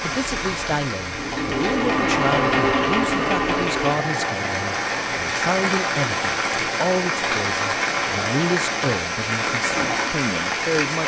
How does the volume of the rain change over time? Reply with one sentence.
The volume of the rain goes up.